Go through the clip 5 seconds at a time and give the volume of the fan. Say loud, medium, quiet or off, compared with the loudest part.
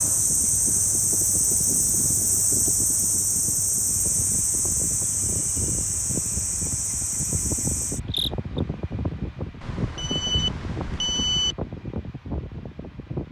medium, loud, loud.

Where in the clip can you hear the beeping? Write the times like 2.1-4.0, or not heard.
9.6-11.6.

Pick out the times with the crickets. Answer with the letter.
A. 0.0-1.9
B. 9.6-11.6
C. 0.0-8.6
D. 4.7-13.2
C.